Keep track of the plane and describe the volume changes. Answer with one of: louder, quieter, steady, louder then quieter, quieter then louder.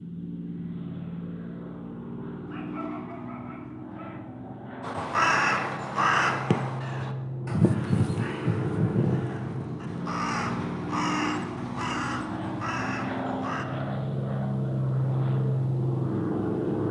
louder.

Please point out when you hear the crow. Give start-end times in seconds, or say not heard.
4.8-13.7.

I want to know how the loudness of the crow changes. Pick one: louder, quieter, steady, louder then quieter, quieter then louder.
quieter.